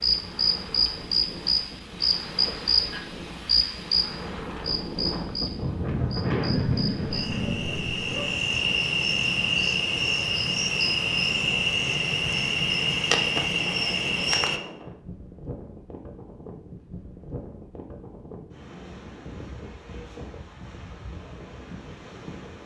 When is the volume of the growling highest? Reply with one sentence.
The volume of the growling peaks at 7 seconds.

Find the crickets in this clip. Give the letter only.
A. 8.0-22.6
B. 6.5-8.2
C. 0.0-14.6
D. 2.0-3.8
C.